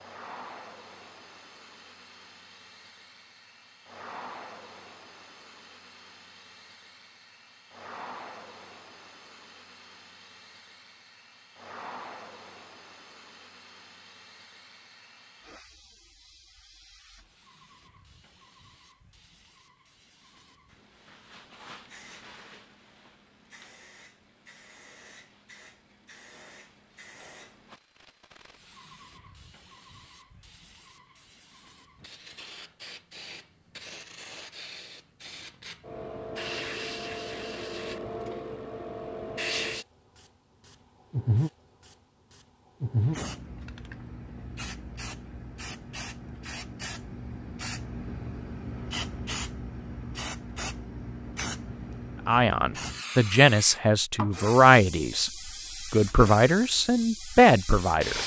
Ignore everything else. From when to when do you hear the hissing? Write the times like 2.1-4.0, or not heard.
0.0-58.2.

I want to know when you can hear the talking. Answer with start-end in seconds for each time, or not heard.
52.2-55.3, 55.9-58.2.